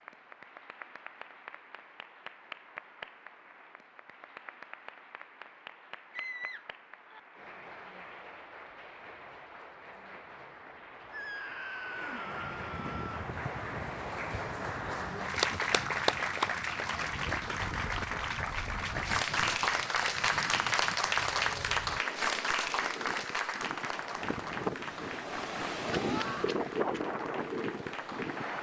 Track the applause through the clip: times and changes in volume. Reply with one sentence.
The applause can be heard from 0.0 to 28.5 s, getting louder then quieter.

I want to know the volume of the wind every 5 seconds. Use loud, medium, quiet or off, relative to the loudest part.
off, off, medium, medium, medium, loud.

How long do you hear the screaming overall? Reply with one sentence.
The screaming can be heard for 4 seconds in total.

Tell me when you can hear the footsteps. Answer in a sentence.
The footsteps can't be heard in this clip.